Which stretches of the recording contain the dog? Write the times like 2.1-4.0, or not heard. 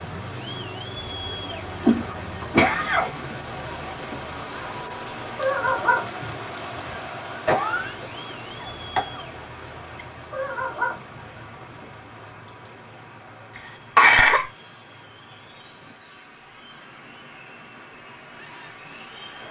5.3-7.0, 10.3-11.8.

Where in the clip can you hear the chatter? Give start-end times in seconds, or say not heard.
0.0-19.4.